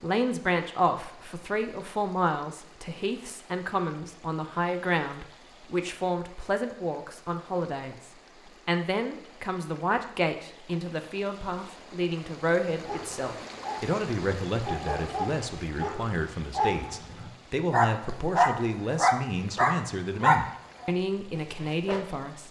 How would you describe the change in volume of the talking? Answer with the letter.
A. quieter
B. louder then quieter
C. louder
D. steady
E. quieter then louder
D.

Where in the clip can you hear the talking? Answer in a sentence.
The talking can be heard from 0.0 to 22.4 s.